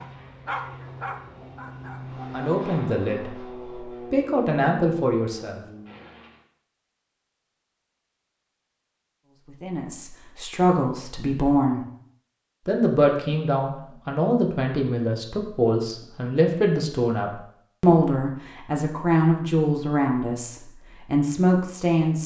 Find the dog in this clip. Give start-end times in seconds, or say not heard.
0.0-2.3.